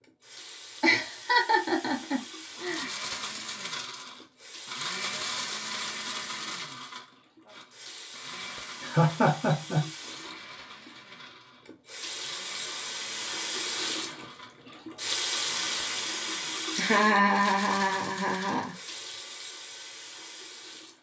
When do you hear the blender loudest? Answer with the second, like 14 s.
5 s.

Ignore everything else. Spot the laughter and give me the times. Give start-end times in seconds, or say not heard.
0.8-2.9, 8.8-9.8, 16.8-18.8.